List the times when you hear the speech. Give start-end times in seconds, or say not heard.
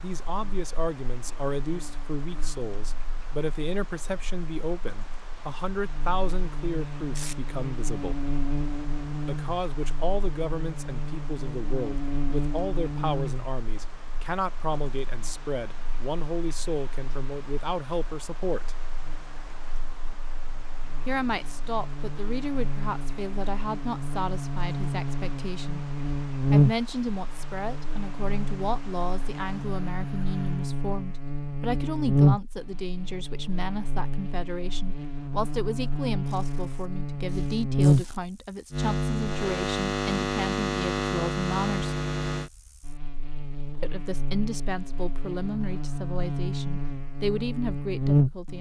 0.0-8.2, 9.2-18.8, 21.1-25.8, 26.5-42.0, 43.8-48.5.